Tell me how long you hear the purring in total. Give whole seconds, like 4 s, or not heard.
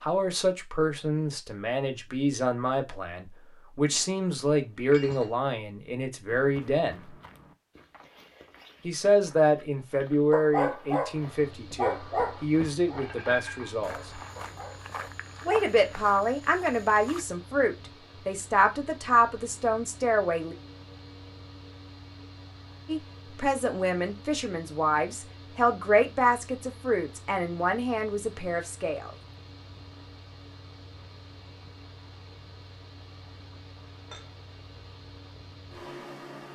not heard.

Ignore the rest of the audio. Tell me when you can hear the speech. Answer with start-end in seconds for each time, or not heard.
0.0-7.0, 8.8-14.1, 15.4-20.6, 22.9-29.1.